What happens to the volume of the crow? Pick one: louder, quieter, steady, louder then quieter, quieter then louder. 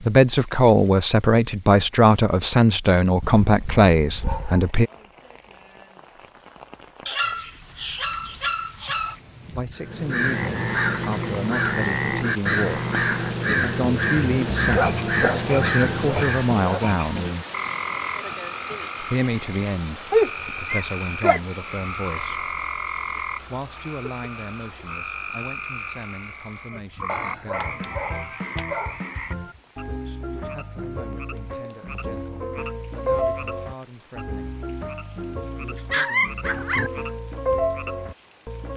steady.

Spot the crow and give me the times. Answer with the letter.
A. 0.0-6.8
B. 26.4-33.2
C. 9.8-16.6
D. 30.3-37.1
C.